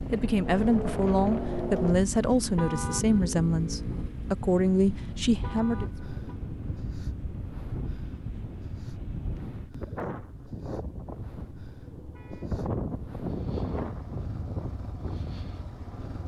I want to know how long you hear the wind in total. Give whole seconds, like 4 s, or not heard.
16 s.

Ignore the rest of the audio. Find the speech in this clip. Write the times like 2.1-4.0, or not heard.
0.1-5.9.